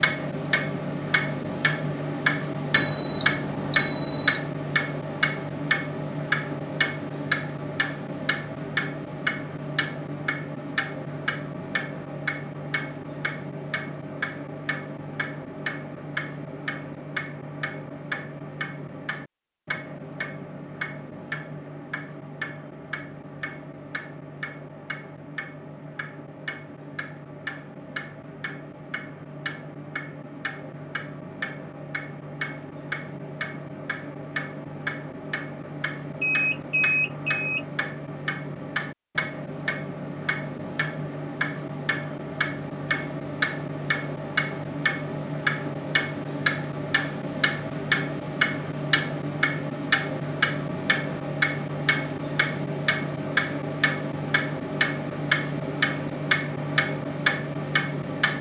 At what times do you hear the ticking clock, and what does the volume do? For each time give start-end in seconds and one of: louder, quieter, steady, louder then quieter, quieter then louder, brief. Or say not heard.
0.0-58.3 quieter then louder.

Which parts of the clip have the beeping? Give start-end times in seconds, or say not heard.
2.8-4.5, 36.2-37.6.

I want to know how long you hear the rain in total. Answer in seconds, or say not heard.
not heard.